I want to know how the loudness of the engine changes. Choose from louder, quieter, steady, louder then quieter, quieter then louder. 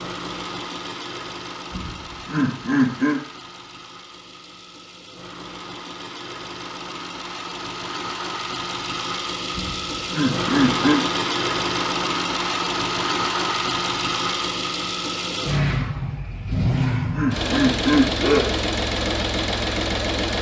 louder.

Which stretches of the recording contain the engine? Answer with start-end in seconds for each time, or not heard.
0.0-20.3.